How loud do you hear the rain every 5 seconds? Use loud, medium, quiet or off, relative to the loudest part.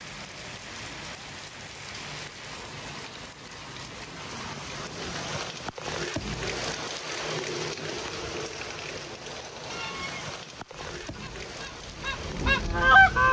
medium, loud, medium.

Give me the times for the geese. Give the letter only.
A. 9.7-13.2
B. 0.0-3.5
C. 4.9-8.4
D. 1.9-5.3
A.